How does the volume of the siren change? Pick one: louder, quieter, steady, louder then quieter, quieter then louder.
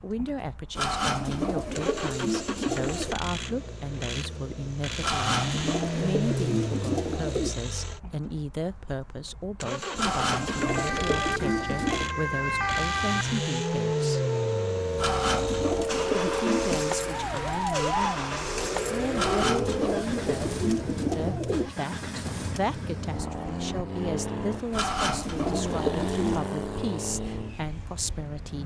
steady.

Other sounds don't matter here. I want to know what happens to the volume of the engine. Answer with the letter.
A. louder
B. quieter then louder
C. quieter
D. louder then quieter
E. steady
E.